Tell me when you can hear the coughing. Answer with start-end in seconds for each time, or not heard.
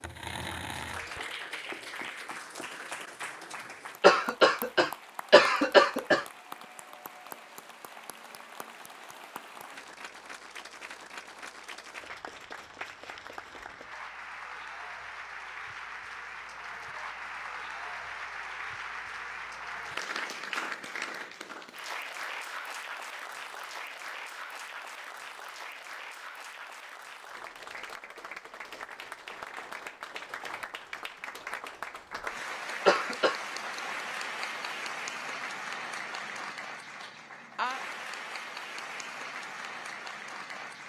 4.0-6.2, 32.9-33.4.